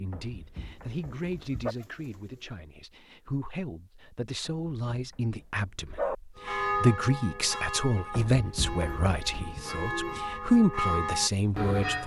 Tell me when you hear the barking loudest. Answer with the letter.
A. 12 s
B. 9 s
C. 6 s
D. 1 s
C.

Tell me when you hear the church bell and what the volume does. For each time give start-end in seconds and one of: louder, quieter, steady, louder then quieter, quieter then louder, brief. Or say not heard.
6.3-12.0 quieter then louder.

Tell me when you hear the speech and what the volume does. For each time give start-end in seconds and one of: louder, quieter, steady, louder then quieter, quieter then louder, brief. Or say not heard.
0.0-12.0 louder.